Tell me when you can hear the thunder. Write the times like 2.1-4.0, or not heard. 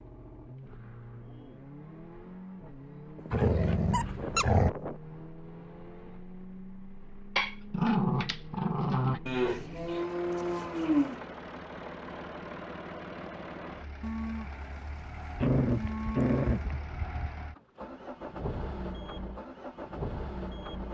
not heard.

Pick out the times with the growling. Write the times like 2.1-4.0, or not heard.
3.3-4.7, 7.3-9.2, 15.3-17.3.